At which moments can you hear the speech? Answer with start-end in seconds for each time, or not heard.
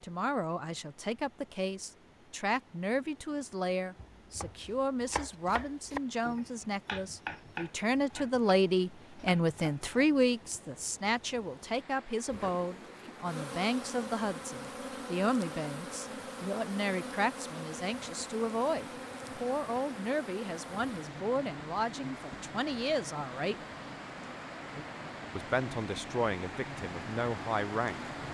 0.0-23.6, 25.4-28.1.